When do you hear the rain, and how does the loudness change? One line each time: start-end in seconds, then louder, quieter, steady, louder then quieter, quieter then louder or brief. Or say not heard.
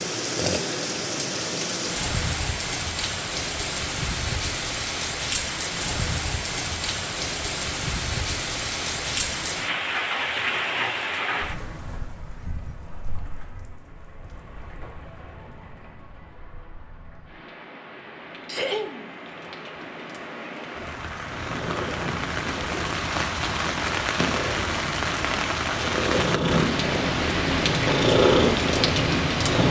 0.0-29.6 quieter then louder.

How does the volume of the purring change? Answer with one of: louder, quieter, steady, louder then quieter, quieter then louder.
louder.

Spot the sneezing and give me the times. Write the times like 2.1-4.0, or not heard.
18.4-19.1.